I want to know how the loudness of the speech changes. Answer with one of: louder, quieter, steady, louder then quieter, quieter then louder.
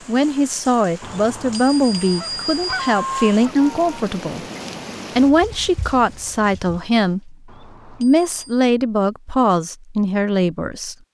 steady.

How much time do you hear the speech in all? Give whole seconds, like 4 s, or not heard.
10 s.